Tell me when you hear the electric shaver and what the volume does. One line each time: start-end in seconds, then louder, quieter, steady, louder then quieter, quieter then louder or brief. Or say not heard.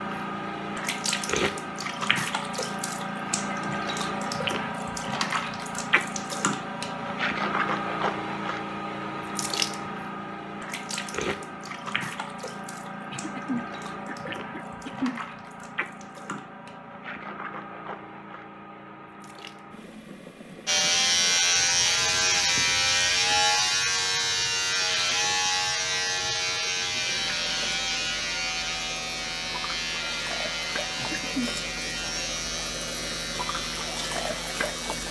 20.6-35.0 quieter.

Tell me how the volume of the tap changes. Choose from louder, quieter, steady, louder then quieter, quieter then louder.
quieter then louder.